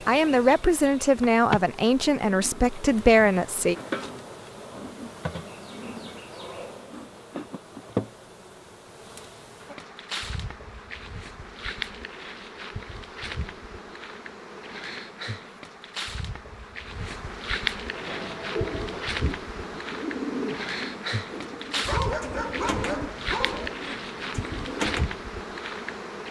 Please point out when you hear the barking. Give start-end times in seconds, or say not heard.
21.9-23.8.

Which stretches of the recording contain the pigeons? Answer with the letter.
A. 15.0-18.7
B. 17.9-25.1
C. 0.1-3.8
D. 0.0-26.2
B.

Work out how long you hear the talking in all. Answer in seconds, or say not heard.
4 s.